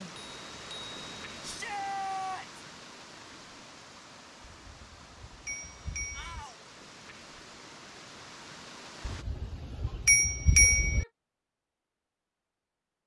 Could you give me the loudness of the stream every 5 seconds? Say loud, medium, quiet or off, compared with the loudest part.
loud, loud, off.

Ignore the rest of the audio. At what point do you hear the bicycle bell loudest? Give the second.
11 s.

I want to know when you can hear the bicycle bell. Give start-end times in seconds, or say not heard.
0.1-1.4, 4.4-6.5, 9.1-11.1.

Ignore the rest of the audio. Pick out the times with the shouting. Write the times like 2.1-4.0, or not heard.
1.4-2.6, 6.1-6.8, 10.6-11.1.